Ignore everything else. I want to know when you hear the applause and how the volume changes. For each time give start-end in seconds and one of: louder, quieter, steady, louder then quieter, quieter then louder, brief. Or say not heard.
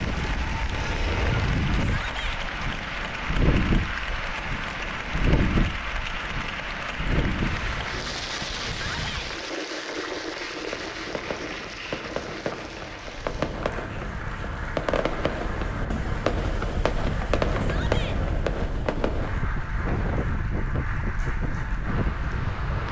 0.0-22.8 quieter.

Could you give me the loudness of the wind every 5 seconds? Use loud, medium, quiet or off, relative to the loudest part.
loud, loud, medium, loud, loud.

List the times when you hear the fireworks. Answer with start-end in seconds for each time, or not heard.
10.7-19.4.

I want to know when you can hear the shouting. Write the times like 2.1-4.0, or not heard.
1.8-2.4, 8.8-9.3, 17.6-18.2.